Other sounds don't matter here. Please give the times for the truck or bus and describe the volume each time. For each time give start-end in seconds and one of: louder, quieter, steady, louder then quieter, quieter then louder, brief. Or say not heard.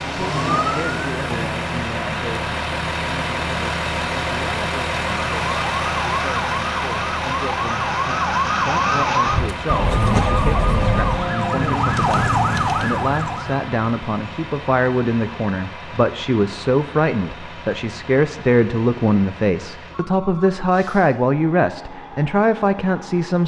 0.0-23.4 quieter.